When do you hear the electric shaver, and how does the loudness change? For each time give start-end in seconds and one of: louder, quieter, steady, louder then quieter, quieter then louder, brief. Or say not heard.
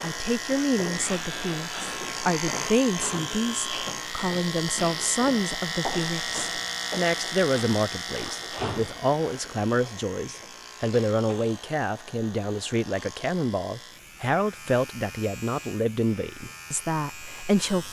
0.0-17.8 quieter.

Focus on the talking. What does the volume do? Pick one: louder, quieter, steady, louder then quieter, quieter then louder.
steady.